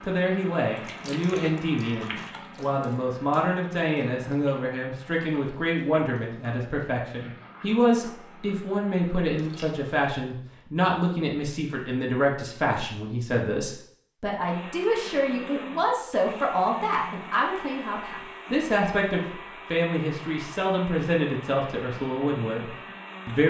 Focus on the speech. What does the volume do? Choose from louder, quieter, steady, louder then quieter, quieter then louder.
steady.